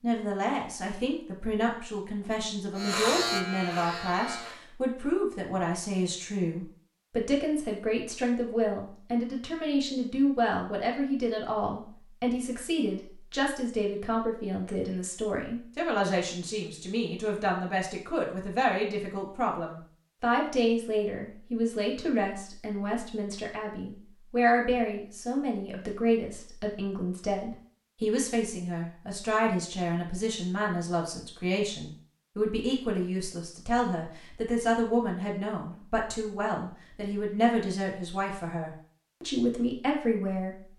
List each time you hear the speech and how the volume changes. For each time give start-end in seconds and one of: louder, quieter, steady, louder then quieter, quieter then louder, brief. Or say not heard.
0.0-40.5 steady.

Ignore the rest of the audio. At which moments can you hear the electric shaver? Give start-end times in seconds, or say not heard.
2.8-4.6.